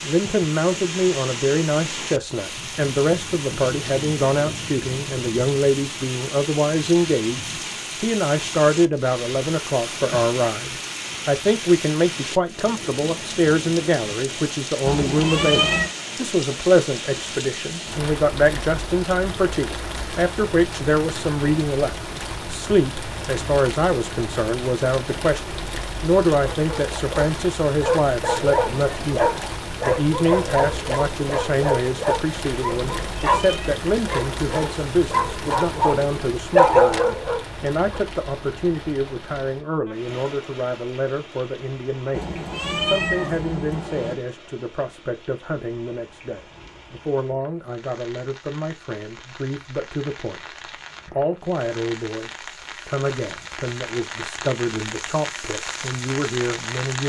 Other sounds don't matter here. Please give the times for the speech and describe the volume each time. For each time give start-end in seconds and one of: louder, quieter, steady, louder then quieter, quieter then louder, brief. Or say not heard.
0.0-57.0 quieter.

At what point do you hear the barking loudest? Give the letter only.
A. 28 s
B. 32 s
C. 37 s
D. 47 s
C.